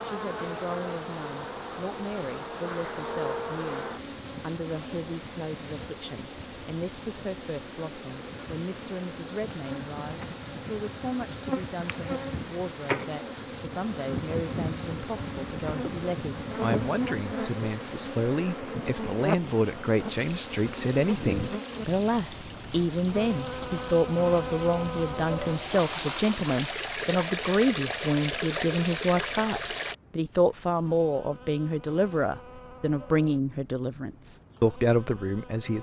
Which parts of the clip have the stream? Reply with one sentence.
The stream can be heard from 0.0 to 29.9 s.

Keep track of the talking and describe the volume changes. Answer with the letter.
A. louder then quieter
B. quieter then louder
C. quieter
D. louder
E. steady
D.